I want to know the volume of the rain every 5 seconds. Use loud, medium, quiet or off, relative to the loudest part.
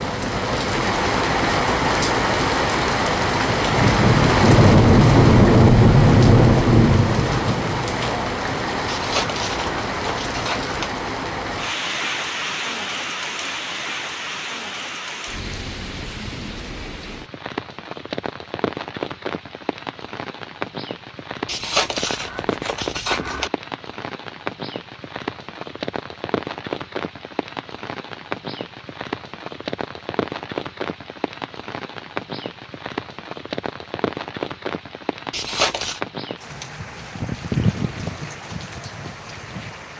loud, loud, medium, quiet, quiet, quiet, quiet, quiet.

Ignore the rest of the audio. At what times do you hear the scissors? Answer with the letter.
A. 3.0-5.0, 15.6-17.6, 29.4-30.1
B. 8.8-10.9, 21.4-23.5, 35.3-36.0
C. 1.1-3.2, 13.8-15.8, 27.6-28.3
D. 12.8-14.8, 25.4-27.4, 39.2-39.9
B.